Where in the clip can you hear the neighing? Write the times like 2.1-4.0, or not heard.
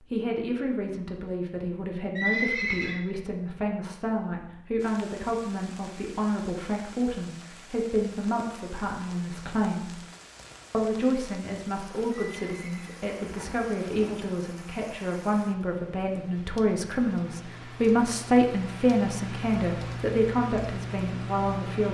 2.1-3.0, 12.3-14.1.